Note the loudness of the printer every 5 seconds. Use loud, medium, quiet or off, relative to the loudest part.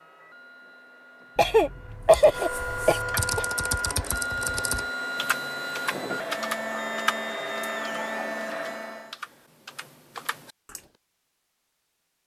loud, loud, off.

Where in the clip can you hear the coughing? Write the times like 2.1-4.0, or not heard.
1.4-3.5.